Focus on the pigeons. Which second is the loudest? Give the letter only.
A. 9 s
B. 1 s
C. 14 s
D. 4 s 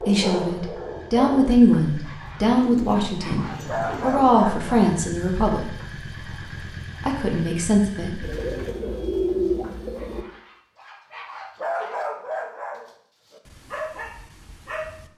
A.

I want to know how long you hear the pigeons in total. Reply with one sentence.
You can hear the pigeons for 4 seconds altogether.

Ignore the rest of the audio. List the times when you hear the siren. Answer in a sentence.
The siren can't be heard in this clip.